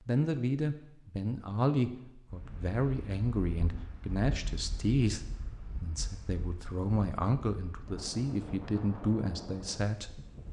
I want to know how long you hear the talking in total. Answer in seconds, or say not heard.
10 s.